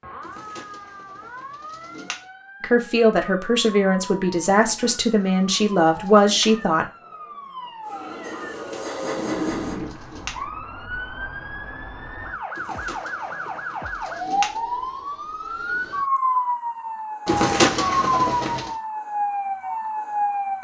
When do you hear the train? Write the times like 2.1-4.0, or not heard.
7.8-9.8.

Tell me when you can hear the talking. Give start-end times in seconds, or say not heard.
2.6-6.8.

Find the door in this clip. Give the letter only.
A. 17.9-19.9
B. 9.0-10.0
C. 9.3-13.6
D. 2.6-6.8
B.